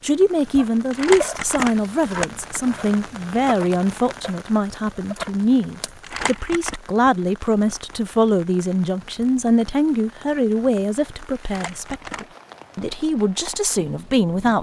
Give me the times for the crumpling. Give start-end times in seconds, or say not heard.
0.9-2.5, 6.0-6.8, 11.4-12.2.